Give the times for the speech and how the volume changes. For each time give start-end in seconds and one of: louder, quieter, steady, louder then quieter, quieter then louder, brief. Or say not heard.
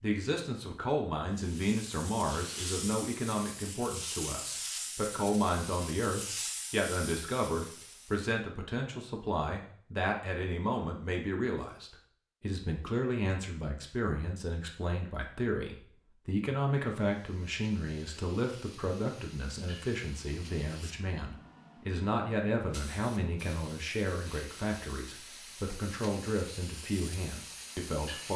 0.0-28.3 steady.